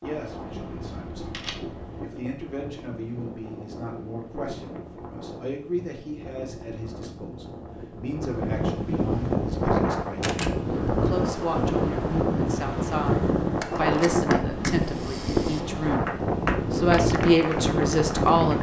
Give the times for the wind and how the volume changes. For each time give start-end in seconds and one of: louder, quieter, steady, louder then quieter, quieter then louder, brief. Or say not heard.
0.0-18.5 louder.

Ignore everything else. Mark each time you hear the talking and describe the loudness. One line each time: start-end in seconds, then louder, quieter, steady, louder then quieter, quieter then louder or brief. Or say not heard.
0.0-18.5 louder.